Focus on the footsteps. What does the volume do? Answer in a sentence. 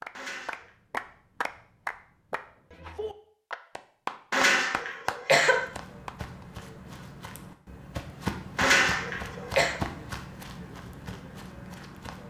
The loudness of the footsteps goes up, then down.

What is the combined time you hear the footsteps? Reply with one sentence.
You can hear the footsteps for 7 seconds altogether.